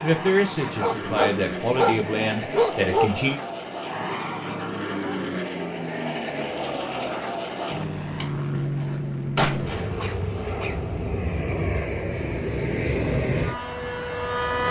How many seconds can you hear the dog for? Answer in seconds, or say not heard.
4 s.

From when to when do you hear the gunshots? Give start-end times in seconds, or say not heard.
7.7-10.4.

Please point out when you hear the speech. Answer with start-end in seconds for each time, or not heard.
0.0-3.4.